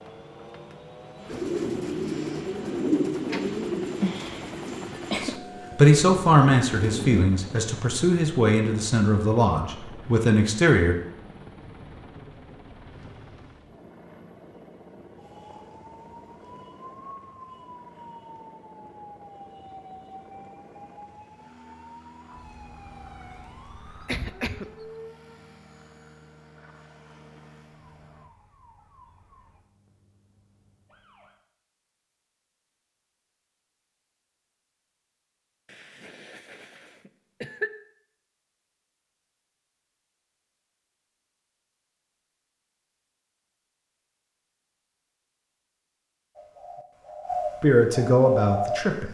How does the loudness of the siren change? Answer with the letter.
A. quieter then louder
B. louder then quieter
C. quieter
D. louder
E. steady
C.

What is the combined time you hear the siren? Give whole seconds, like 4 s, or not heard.
16 s.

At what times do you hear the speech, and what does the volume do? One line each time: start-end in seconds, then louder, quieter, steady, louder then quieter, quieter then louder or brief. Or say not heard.
5.2-10.9 quieter
47.6-49.0 brief.